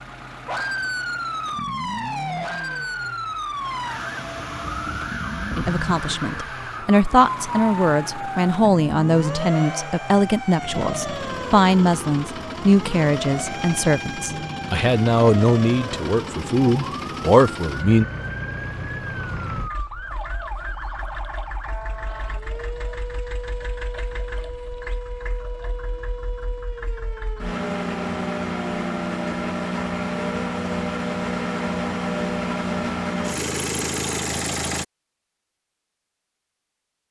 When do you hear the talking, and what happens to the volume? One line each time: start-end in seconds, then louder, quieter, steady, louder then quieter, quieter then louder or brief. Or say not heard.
5.5-18.1 steady.